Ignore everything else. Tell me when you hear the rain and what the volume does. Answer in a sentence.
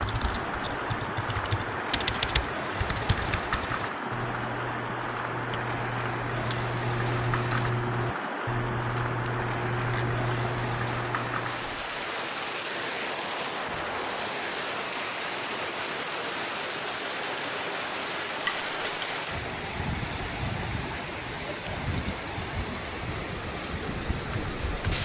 The rain can be heard from 0.0 to 24.9 s, at a steady volume.